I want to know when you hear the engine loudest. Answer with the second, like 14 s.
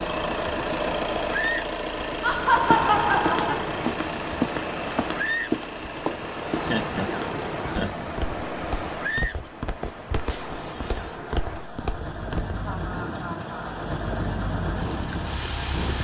1 s.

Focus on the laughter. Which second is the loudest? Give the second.
3 s.